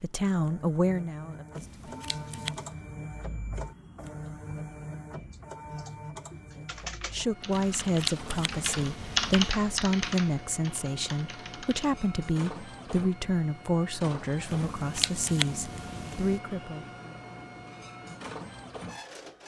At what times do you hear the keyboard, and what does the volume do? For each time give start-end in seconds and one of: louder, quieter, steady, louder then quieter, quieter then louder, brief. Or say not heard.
5.3-11.9 louder then quieter.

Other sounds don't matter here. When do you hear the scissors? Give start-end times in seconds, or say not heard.
1.6-2.8, 7.5-9.5, 14.4-16.4.